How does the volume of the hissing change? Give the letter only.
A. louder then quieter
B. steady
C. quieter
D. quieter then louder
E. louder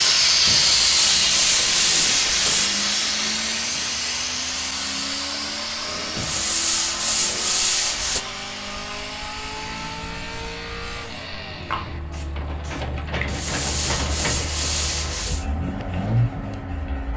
C.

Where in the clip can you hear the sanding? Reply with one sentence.
The sanding can be heard from 0.5 to 2.7 s, from 6.2 to 8.2 s and from 13.2 to 15.4 s.